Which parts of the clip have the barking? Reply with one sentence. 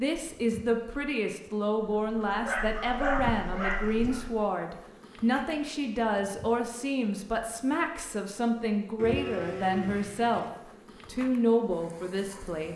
You can hear the barking from 2.4 to 4.2 s.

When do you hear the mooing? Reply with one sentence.
The mooing can be heard from 8.9 to 10.5 s.